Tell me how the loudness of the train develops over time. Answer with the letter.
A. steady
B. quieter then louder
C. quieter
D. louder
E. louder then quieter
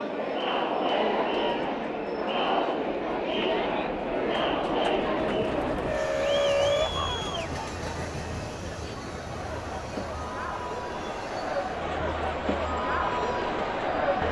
E.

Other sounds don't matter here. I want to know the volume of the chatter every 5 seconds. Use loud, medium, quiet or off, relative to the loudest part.
loud, medium, loud.